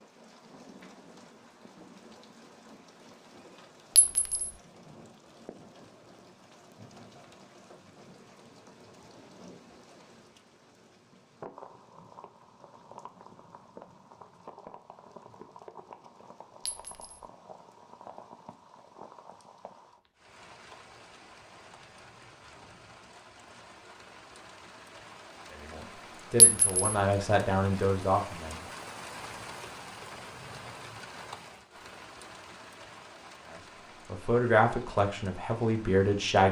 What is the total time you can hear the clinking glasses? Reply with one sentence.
You can hear the clinking glasses for 2 seconds altogether.